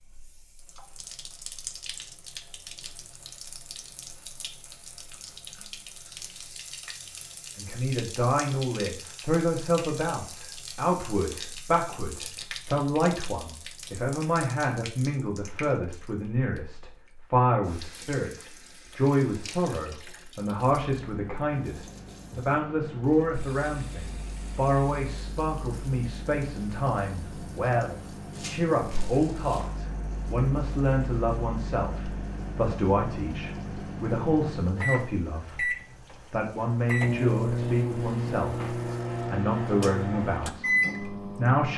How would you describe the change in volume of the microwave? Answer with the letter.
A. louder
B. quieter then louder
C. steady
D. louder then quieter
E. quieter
A.